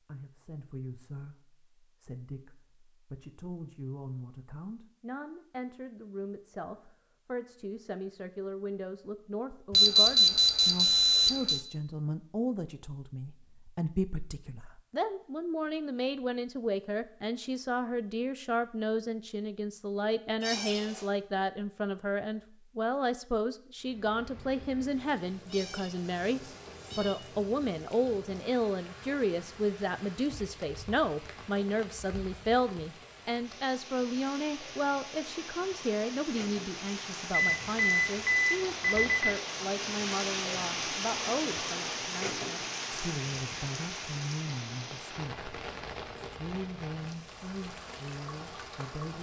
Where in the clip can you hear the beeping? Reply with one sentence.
The beeping can be heard from 9.7 to 11.6 s and from 37.3 to 39.4 s.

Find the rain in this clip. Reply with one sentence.
The rain can be heard from 23.8 to 49.1 s.